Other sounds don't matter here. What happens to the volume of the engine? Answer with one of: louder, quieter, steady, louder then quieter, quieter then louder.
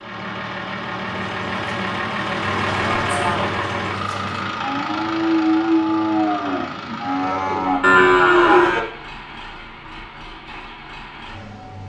quieter.